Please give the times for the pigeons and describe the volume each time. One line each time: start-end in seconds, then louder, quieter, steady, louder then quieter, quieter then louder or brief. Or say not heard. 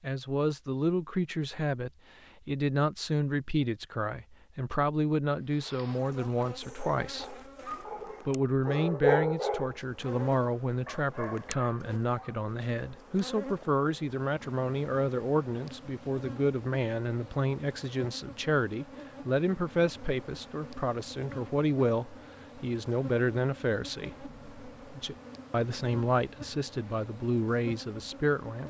not heard.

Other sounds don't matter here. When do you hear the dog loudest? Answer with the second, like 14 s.
9 s.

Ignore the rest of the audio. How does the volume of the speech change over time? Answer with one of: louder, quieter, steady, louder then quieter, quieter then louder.
steady.